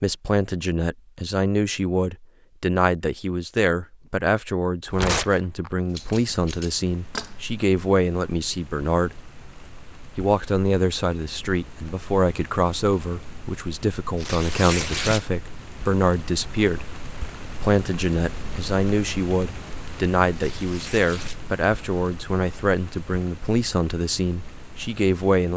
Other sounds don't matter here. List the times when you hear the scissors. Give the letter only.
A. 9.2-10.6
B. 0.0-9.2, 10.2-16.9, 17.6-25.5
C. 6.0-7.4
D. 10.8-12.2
C.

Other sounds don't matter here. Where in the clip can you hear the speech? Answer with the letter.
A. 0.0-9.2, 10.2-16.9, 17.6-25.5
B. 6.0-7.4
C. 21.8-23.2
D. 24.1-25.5
A.